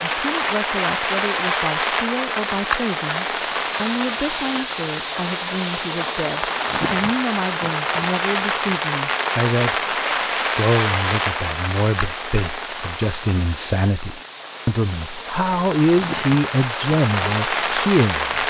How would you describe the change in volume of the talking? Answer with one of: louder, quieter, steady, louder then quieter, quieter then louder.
louder.